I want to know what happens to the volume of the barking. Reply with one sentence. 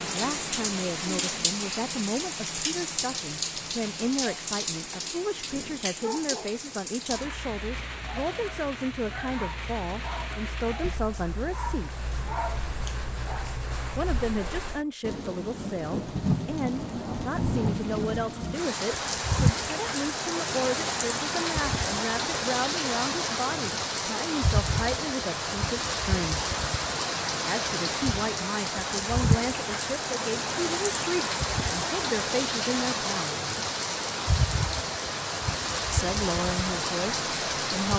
The volume of the barking goes up.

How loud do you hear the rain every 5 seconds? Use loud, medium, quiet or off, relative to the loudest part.
loud, medium, medium, loud, loud, loud, loud, loud.